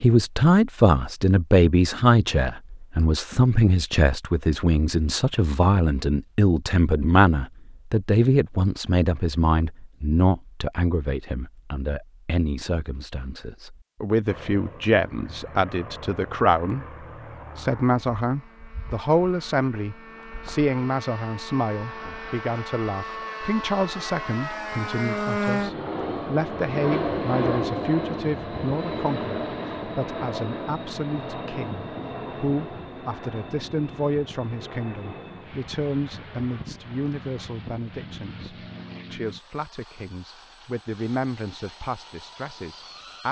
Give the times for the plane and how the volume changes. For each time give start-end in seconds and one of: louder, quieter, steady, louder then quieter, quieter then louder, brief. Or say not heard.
14.2-43.2 louder then quieter.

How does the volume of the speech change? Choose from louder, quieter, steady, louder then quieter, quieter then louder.
quieter.